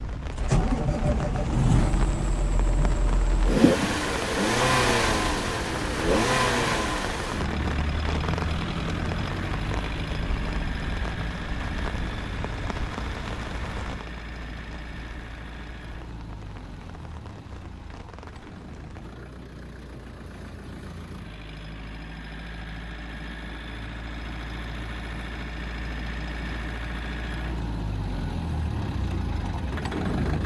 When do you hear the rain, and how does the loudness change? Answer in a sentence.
You can hear the rain from 0.0 to 19.1 s, getting quieter.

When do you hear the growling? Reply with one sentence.
The growling can't be heard in this clip.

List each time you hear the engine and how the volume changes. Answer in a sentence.
You can hear the engine from 0.0 to 30.4 s, getting quieter then louder.